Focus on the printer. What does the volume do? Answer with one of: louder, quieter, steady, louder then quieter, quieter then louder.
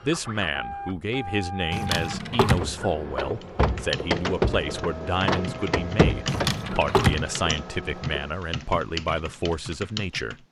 louder then quieter.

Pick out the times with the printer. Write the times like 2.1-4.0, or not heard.
0.0-8.3.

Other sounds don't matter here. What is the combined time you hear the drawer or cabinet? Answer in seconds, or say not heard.
2 s.